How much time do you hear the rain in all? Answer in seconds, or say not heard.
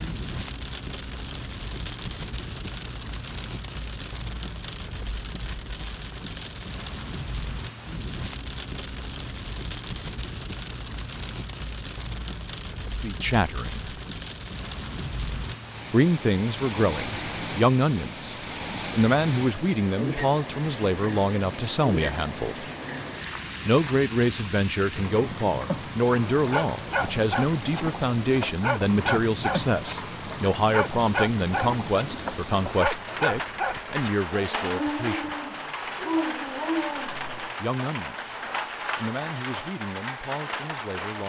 41 s.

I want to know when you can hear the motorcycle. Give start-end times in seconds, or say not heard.
not heard.